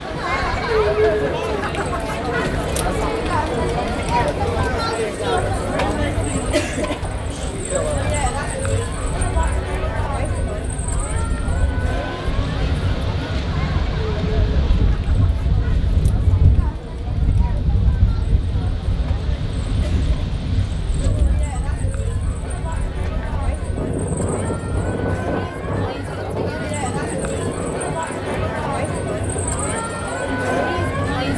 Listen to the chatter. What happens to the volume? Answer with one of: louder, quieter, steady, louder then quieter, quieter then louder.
quieter then louder.